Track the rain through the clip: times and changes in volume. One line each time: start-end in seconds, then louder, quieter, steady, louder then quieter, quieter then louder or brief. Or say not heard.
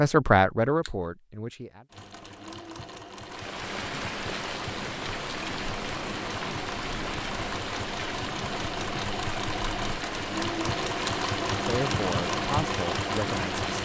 3.2-13.8 steady.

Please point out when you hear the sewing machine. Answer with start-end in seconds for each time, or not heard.
1.9-13.8.